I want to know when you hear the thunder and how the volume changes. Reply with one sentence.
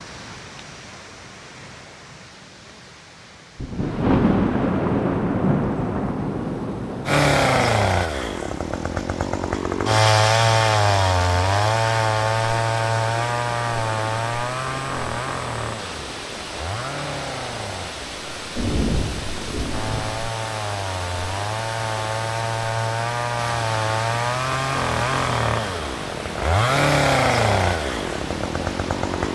The thunder can be heard from 3.5 to 7.7 s, getting quieter; and briefly from 18.6 to 20.3 s.